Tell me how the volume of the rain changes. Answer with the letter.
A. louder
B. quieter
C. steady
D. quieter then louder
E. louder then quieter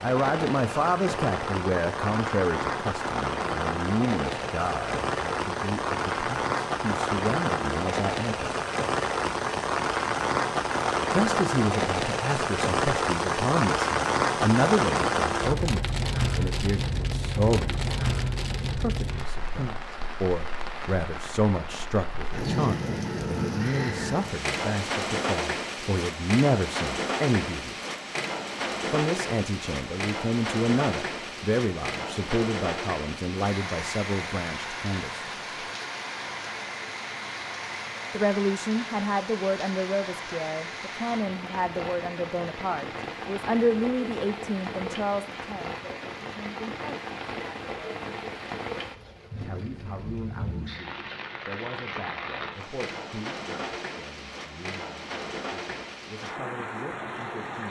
B.